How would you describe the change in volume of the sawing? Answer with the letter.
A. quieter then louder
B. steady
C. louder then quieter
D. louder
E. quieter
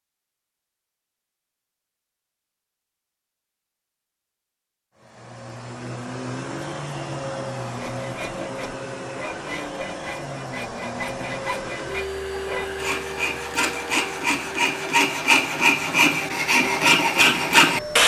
D.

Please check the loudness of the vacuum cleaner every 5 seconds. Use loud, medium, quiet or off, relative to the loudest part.
off, loud, loud, loud.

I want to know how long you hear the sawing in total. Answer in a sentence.
You can hear the sawing for 10 seconds altogether.